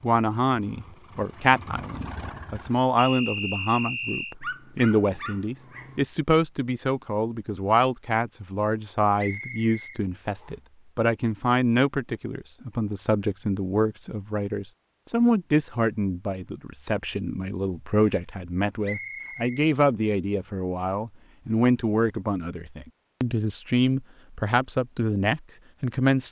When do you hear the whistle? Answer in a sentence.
You can hear the whistle from 3.0 to 4.3 s, from 9.2 to 10.6 s and from 18.8 to 19.6 s.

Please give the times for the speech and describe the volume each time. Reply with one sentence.
The speech can be heard from 0.0 to 26.2 s, at a steady volume.